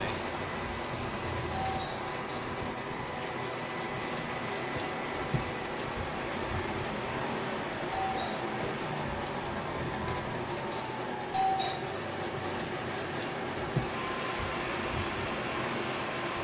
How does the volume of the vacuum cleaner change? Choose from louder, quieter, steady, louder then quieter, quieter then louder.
steady.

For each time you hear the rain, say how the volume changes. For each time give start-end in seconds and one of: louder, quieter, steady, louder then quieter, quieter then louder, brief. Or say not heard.
0.0-16.3 steady.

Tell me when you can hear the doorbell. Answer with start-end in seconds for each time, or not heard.
1.5-2.1, 7.9-8.5, 11.3-11.8.